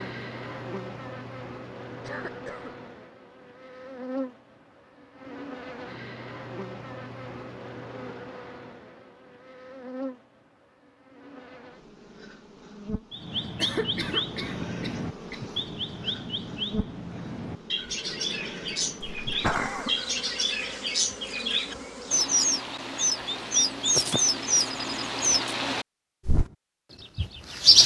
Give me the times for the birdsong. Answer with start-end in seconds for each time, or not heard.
13.1-27.8.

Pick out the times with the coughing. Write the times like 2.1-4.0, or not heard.
2.0-2.8, 13.6-15.4, 19.2-19.9.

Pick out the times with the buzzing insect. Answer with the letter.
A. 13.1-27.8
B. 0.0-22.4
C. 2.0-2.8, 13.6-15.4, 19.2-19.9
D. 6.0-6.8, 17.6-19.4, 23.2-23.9
B.